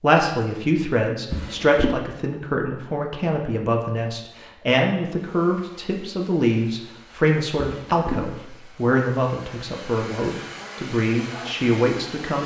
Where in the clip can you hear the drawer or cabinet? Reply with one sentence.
You can hear the drawer or cabinet from 1.3 to 2.0 s and from 7.6 to 8.2 s.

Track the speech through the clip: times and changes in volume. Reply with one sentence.
The speech can be heard from 0.0 to 12.4 s, at a steady volume.